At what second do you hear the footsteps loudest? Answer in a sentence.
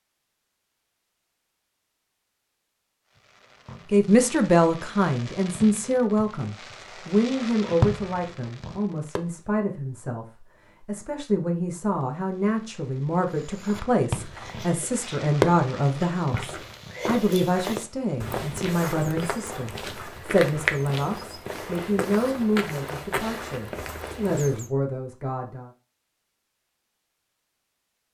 The loudest moment of the footsteps is at 21 seconds.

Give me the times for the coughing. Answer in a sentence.
The coughing can't be heard in this clip.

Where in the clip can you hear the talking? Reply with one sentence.
The talking can be heard from 3.9 to 25.7 s.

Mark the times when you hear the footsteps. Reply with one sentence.
The footsteps can be heard from 13.3 to 24.7 s.